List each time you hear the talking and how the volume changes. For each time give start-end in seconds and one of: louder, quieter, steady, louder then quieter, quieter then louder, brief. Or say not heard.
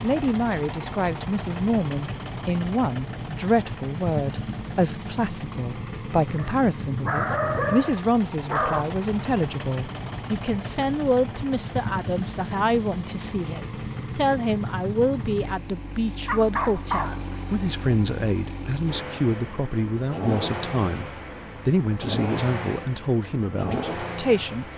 0.0-24.7 steady.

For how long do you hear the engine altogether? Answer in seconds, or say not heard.
25 s.